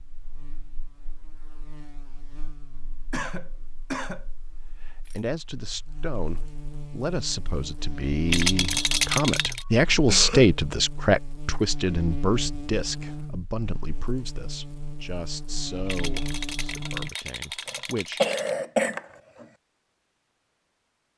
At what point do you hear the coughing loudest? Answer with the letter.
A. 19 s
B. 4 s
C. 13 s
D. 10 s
A.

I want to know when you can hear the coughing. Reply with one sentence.
You can hear the coughing from 3.1 to 4.2 s, from 9.6 to 10.6 s and from 17.6 to 19.4 s.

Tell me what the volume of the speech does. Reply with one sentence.
The loudness of the speech goes up, then down.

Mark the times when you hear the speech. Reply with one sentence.
You can hear the speech from 4.8 to 18.2 s.